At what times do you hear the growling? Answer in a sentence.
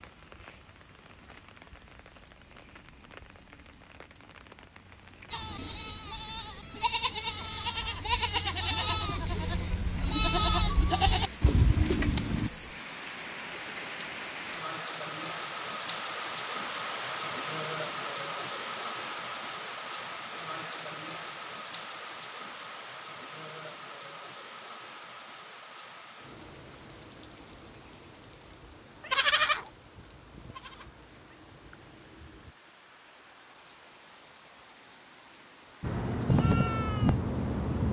You can't hear the growling here.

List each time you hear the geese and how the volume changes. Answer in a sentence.
The geese can't be heard in this clip.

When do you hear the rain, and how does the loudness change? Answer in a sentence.
The rain can be heard from 0.0 to 37.8 s, getting louder then quieter.